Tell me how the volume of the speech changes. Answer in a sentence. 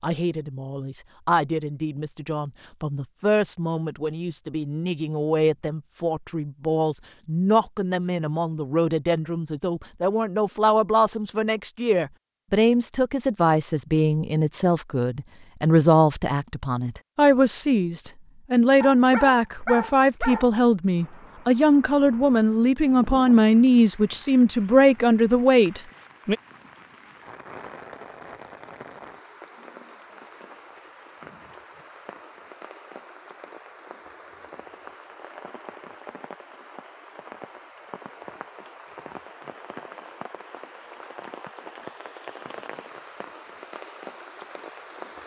The volume of the speech goes up.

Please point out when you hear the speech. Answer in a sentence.
The speech can be heard from 0.0 to 26.4 s.